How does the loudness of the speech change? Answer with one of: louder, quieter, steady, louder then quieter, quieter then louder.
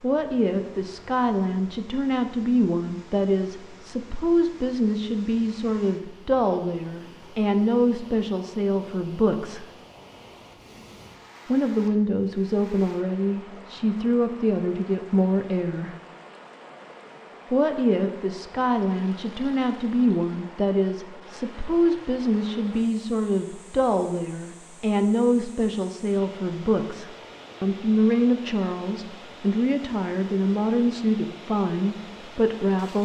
steady.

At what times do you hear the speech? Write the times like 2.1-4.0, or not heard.
0.0-9.7, 11.4-15.9, 17.5-32.9.